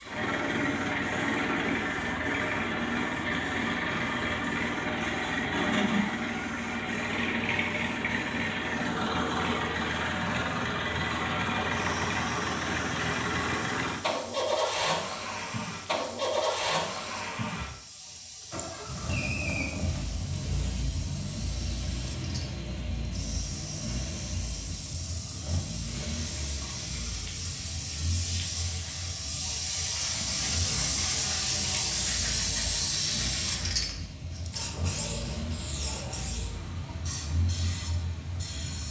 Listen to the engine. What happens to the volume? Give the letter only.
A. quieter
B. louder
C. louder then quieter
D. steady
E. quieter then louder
A.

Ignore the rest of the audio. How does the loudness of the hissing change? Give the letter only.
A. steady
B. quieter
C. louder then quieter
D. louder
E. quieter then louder
D.